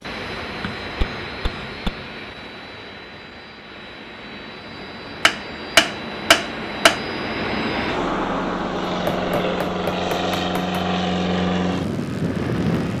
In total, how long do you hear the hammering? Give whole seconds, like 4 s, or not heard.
5 s.